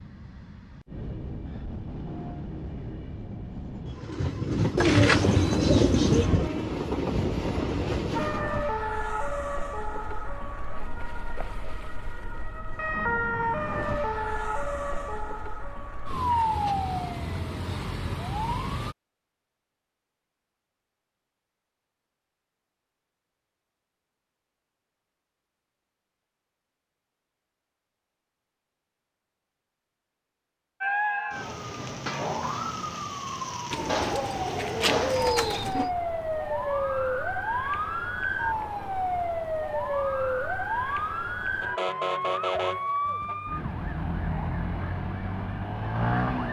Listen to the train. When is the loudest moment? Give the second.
6 s.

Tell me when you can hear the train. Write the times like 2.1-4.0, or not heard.
0.0-8.4.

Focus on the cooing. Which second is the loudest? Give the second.
5 s.